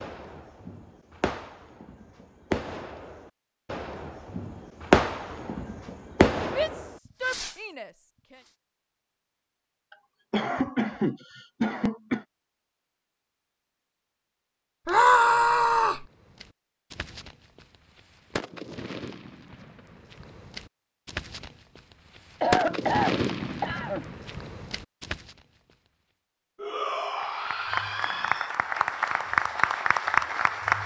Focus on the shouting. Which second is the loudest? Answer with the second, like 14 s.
15 s.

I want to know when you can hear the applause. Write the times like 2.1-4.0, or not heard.
27.1-30.8.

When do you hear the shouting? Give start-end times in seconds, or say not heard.
6.5-8.3, 14.8-16.1, 26.6-28.5.